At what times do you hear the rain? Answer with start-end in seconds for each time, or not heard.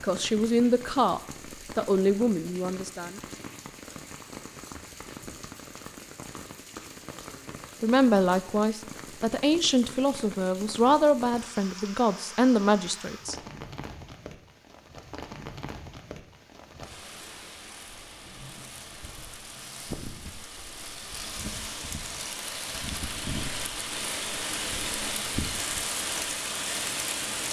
0.0-27.4.